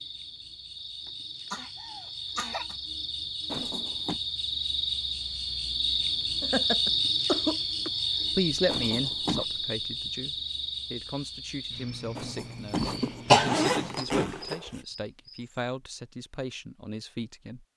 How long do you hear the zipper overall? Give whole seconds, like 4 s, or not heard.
4 s.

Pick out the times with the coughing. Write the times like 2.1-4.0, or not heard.
1.5-2.8, 6.4-7.9, 13.3-14.0.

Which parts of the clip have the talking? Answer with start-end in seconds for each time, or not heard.
8.3-17.6.